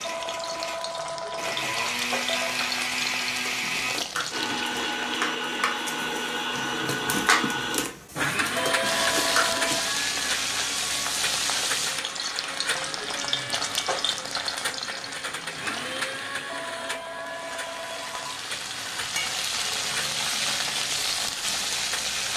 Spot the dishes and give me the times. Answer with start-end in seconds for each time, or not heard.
3.2-9.9.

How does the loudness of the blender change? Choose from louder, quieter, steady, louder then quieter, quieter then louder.
quieter.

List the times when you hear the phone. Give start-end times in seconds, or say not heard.
0.0-2.6, 8.6-9.9, 16.4-18.2.